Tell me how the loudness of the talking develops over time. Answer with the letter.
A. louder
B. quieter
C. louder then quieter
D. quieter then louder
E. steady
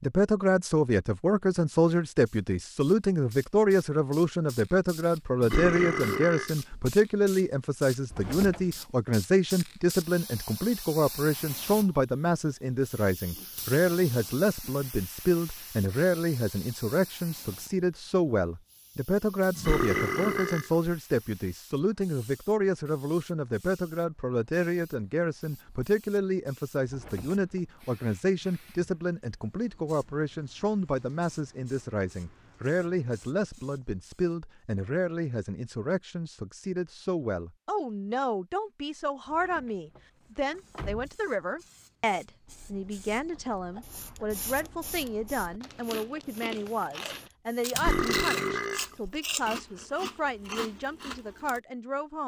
B.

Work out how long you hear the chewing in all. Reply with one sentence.
The chewing can be heard for 9 seconds in total.